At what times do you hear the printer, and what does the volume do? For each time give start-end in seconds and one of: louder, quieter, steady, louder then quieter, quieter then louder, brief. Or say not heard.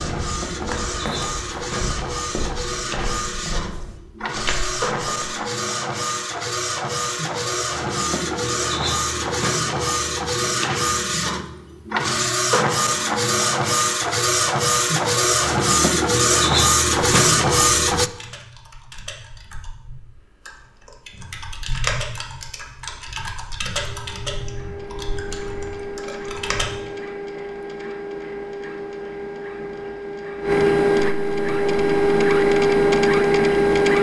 0.0-18.1 louder
23.8-33.9 louder.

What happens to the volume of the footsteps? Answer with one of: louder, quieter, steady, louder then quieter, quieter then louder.
quieter then louder.